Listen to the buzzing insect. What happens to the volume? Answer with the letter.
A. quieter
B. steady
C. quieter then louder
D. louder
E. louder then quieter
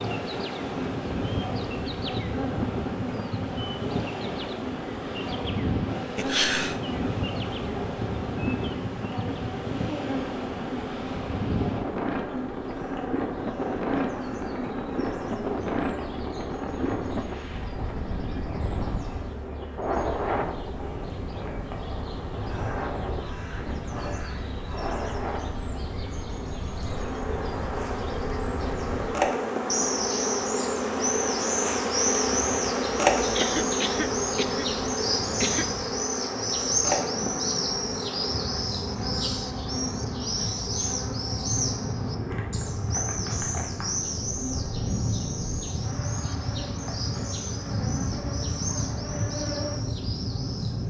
E.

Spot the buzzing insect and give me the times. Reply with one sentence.
You can hear the buzzing insect from 0.0 to 50.8 s.